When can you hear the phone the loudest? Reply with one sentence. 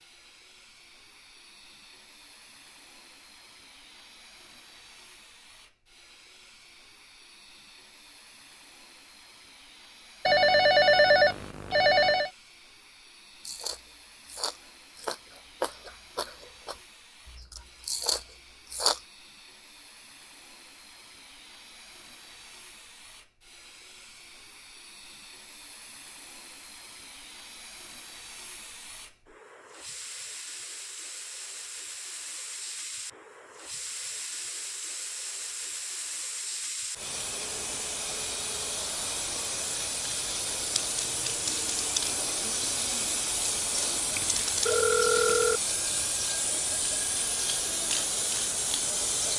The loudest moment of the phone is at 11 seconds.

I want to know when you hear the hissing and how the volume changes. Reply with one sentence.
The hissing can be heard from 0.0 to 49.3 s, getting louder.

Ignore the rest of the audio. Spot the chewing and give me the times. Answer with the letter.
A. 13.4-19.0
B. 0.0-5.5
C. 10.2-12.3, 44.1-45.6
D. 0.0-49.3
A.